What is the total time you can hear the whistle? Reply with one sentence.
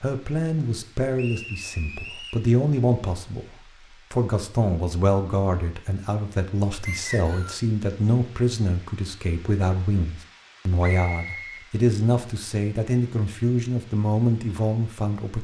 The whistle can be heard for 3 seconds in total.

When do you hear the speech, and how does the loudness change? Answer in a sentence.
The speech can be heard from 0.0 to 15.4 s, at a steady volume.